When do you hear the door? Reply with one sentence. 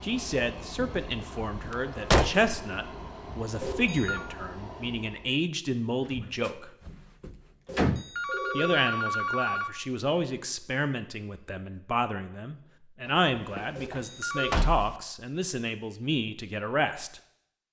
The door can be heard from 0.8 to 2.5 s, from 6.0 to 8.1 s and from 13.1 to 14.9 s.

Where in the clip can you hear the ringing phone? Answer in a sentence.
The ringing phone can be heard from 3.6 to 4.2 s, from 7.7 to 9.7 s and from 13.8 to 14.7 s.